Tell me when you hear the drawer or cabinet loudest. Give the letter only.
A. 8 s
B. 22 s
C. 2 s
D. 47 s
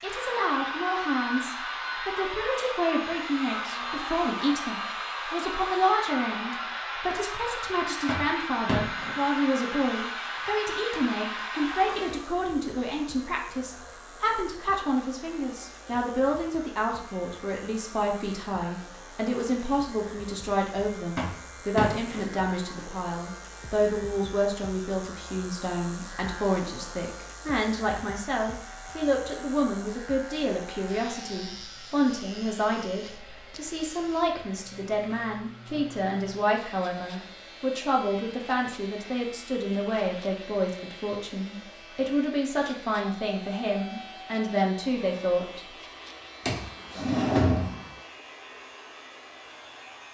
D.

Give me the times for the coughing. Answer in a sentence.
The coughing can't be heard in this clip.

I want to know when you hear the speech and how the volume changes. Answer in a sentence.
The speech can be heard from 0.0 to 45.6 s, at a steady volume.